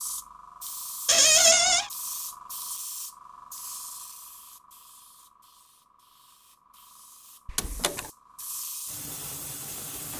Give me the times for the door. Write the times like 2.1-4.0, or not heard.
1.1-1.9, 7.5-8.1.